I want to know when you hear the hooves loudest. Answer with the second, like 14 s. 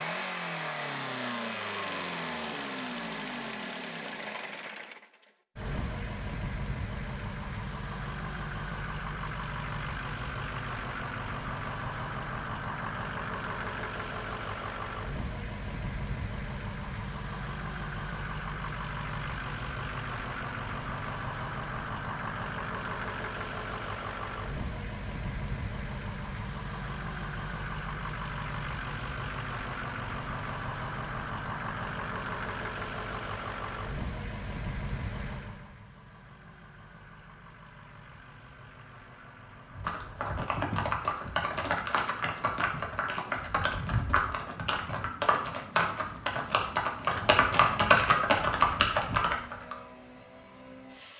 48 s.